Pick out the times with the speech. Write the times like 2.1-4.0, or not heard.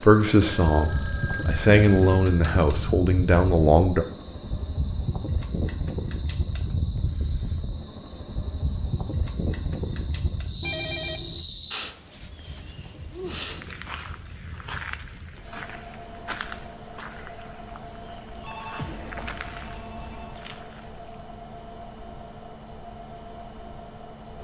0.0-4.0.